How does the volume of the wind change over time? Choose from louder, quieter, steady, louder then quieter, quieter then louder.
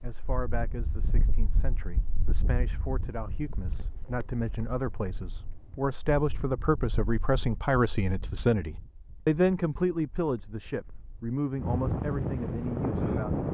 quieter then louder.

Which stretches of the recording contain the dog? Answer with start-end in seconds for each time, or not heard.
not heard.